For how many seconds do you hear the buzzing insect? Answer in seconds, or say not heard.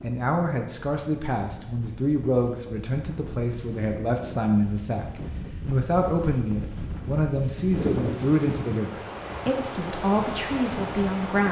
not heard.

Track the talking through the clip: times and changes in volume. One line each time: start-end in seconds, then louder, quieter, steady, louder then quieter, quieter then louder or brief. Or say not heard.
0.0-11.4 steady.